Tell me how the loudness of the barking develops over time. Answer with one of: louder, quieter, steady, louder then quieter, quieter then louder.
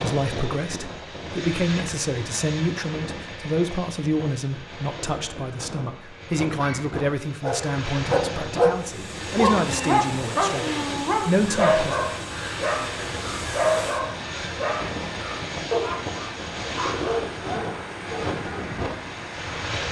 quieter.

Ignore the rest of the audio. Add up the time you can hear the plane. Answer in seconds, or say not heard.
20 s.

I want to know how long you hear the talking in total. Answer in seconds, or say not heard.
12 s.